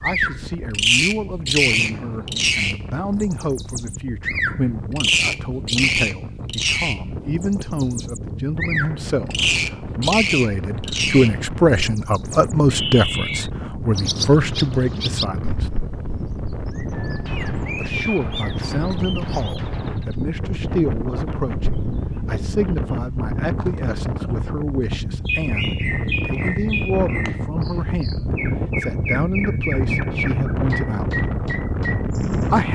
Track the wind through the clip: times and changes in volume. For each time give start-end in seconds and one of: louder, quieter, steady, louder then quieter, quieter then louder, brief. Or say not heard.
0.0-32.6 louder.